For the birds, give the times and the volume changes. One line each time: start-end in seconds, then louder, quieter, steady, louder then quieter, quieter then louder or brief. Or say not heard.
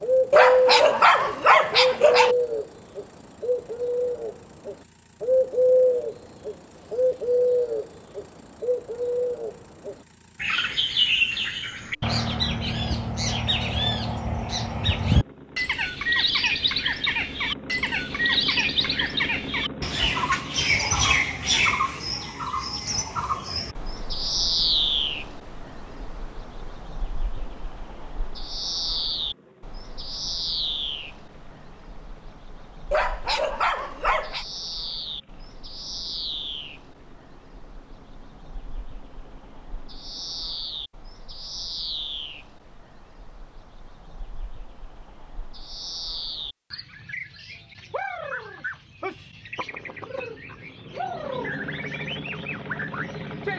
0.0-53.5 quieter.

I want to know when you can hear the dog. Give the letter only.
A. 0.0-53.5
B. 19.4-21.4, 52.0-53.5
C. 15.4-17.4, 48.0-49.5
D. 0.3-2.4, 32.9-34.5
D.